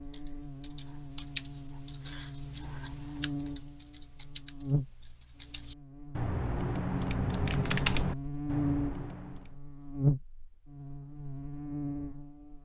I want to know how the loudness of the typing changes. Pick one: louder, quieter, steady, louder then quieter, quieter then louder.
quieter then louder.